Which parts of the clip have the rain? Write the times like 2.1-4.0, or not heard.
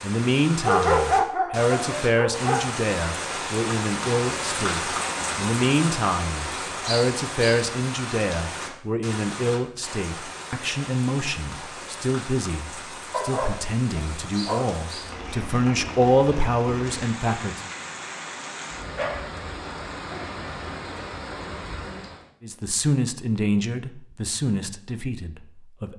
0.0-22.3.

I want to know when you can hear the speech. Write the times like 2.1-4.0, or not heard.
0.0-17.7, 22.4-25.9.